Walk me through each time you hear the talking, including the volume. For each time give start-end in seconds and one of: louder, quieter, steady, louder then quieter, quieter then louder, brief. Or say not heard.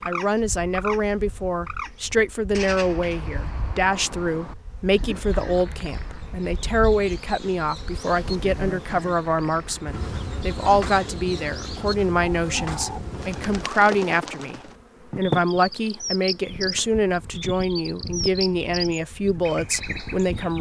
0.1-20.5 steady.